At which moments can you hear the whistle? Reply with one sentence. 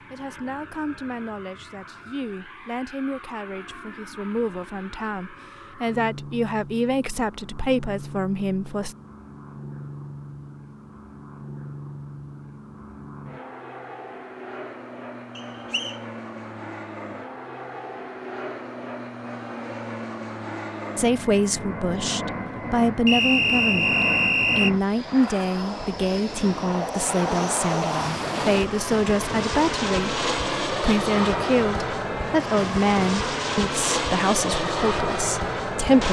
The whistle can be heard from 15.3 to 15.9 s and from 23.1 to 24.7 s.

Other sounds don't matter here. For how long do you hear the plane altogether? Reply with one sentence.
The plane can be heard for 36 seconds in total.